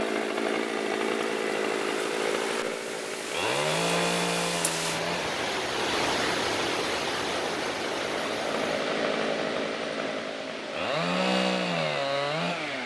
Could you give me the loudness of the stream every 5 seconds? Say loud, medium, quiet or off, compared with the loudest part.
medium, loud, medium.